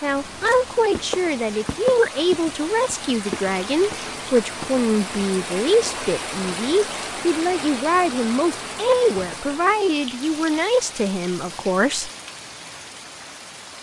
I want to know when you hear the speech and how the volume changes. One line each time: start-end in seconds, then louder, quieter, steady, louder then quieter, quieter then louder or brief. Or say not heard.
0.0-12.1 steady.